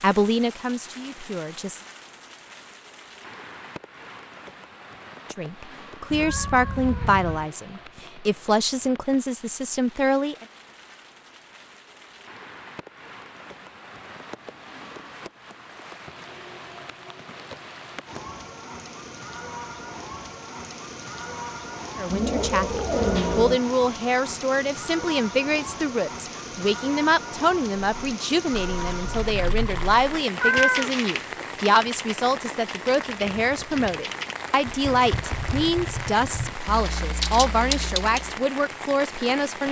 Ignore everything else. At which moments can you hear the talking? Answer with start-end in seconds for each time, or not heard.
0.0-1.8, 5.3-10.4, 21.9-39.6.